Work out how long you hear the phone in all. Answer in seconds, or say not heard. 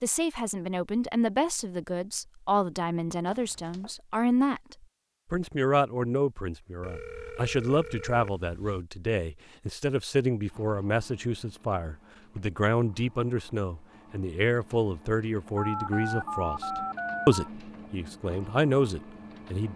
5 s.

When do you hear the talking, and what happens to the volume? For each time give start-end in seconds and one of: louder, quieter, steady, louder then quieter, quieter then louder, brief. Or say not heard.
0.0-19.7 steady.